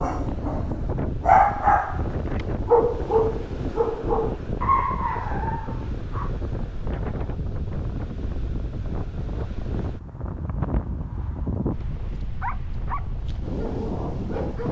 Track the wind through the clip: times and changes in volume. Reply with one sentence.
The wind can be heard from 0.0 to 14.6 s, at a steady volume.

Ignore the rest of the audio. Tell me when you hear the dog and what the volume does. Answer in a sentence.
The dog can be heard from 0.0 to 6.3 s, getting quieter; and briefly from 12.4 to 14.6 s.